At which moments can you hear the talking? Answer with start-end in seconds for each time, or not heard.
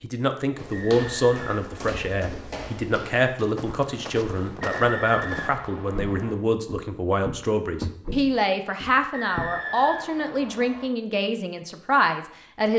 0.0-12.7.